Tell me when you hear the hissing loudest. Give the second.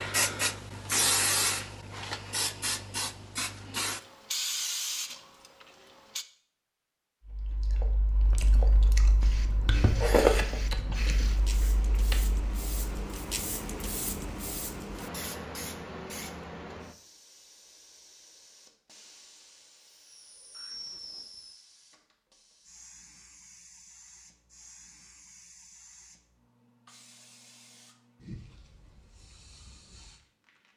1 s.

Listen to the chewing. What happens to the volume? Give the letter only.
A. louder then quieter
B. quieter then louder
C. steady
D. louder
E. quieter
A.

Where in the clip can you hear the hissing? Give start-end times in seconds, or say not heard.
0.0-6.2, 9.2-30.7.